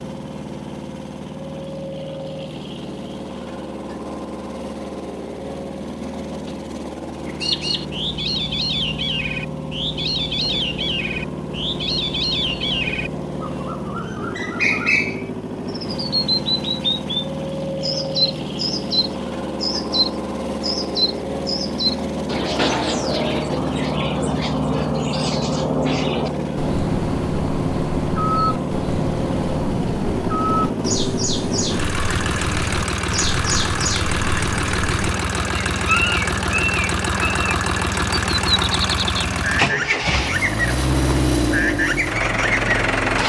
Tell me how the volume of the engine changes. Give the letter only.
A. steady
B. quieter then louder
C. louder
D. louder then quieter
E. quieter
C.